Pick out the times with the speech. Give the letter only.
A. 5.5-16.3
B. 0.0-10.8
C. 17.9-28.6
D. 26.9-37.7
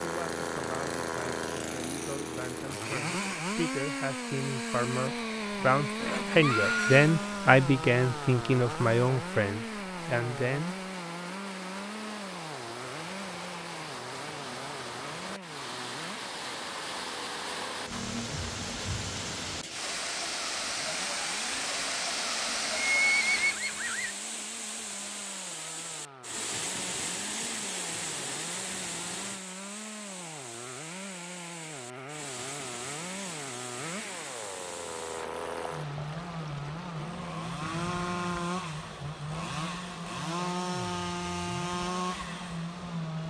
B.